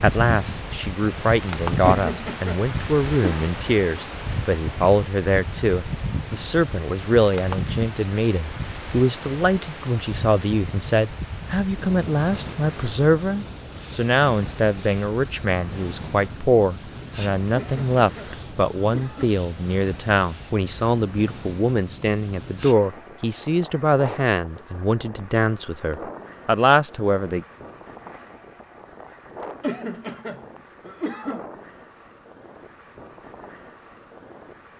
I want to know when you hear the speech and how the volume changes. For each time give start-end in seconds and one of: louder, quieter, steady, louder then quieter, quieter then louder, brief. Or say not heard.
0.0-27.4 steady.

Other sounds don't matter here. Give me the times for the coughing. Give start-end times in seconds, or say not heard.
1.9-3.5, 17.6-19.4, 29.6-31.4.